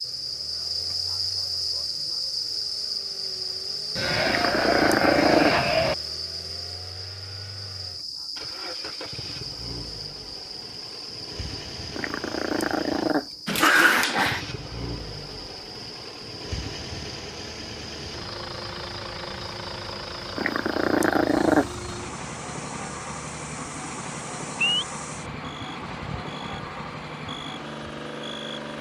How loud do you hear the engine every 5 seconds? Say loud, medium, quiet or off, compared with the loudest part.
quiet, medium, loud, loud, loud, loud.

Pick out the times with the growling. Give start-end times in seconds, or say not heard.
4.2-5.5, 11.9-14.4, 20.4-21.7.